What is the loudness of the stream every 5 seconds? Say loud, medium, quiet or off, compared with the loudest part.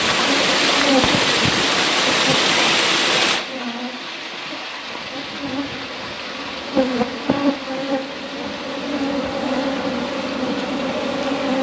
loud, quiet, quiet.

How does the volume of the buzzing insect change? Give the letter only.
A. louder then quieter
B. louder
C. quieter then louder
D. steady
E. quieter
C.